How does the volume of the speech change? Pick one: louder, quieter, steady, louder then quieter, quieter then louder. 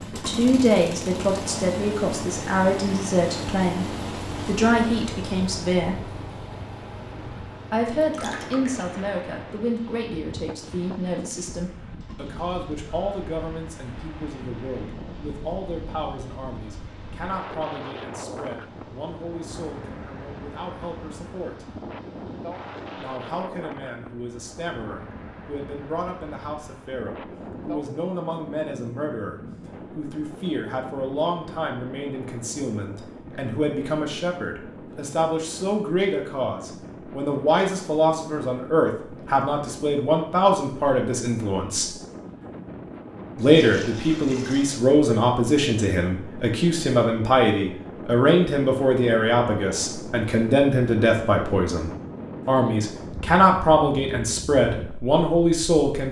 quieter then louder.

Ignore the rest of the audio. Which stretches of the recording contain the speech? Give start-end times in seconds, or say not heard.
0.1-6.0, 7.7-21.6, 22.9-41.9, 43.4-56.0.